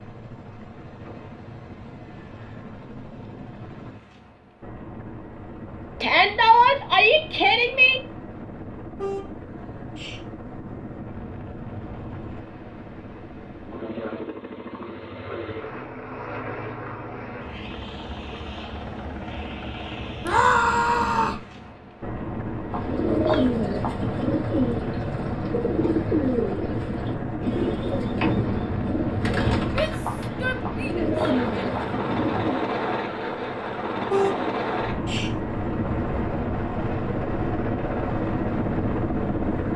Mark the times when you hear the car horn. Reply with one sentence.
You can hear the car horn from 8.9 to 10.2 s and from 34.1 to 35.3 s.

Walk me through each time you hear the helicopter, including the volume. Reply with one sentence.
The helicopter can be heard from 0.0 to 39.7 s, getting louder.